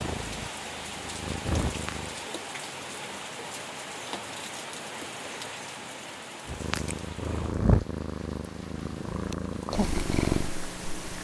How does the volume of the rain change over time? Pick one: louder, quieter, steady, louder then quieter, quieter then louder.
quieter.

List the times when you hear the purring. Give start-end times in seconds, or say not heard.
0.0-2.2, 6.5-11.1.